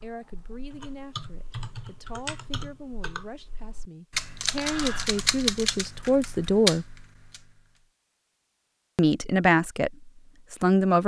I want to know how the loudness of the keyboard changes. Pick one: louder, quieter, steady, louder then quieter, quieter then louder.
louder.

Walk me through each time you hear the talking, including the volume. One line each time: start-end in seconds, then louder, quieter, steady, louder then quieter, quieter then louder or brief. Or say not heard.
0.0-6.8 louder
8.9-11.0 brief.